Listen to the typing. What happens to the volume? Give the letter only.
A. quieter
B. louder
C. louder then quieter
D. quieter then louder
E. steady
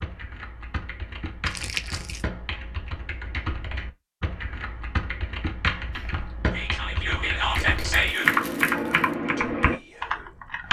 B.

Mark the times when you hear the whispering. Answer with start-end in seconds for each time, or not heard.
5.9-10.6.